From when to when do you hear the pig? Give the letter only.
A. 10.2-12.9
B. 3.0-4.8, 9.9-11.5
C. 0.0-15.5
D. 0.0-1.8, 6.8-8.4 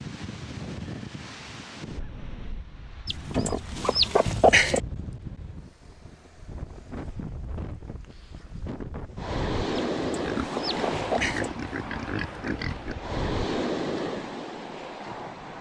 A.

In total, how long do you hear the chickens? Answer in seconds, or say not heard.
3 s.